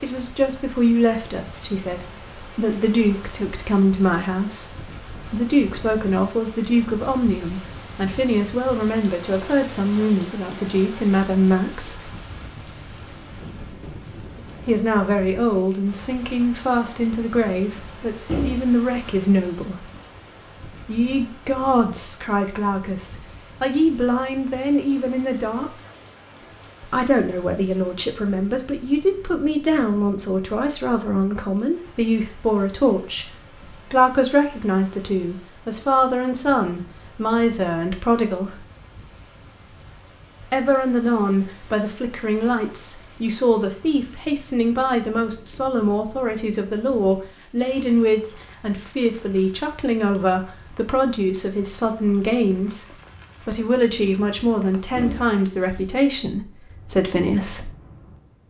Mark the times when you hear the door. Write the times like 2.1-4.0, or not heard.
18.2-19.2, 55.0-55.9.